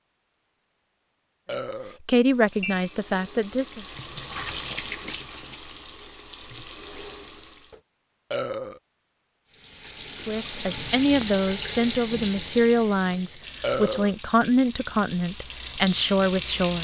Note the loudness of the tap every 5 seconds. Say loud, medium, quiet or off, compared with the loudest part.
medium, quiet, loud, loud.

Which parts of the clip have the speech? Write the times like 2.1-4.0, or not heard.
2.0-3.9, 10.2-16.8.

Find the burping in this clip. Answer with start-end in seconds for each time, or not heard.
1.4-2.0, 8.3-8.8, 13.6-14.2.